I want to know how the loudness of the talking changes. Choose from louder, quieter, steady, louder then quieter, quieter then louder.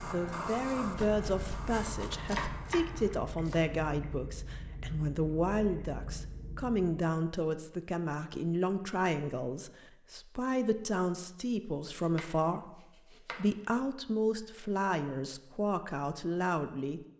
steady.